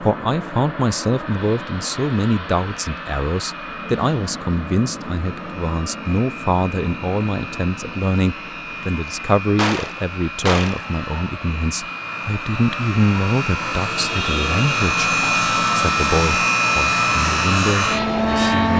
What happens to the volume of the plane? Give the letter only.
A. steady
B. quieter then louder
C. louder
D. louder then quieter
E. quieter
C.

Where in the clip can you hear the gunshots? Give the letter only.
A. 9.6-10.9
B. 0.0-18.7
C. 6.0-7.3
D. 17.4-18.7
A.